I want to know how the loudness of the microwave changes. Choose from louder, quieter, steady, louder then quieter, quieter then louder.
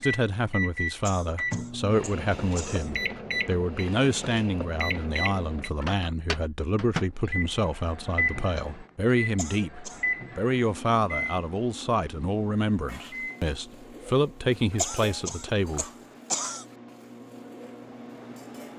quieter.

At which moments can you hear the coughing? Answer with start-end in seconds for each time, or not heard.
1.1-3.0, 9.3-10.1, 14.8-16.6.